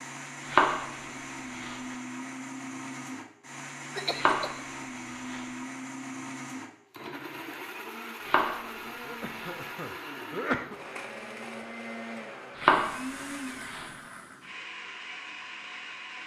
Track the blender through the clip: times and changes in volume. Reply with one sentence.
The blender can be heard from 0.0 to 16.2 s, at a steady volume.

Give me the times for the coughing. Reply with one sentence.
The coughing can be heard from 3.9 to 4.5 s and from 9.1 to 10.8 s.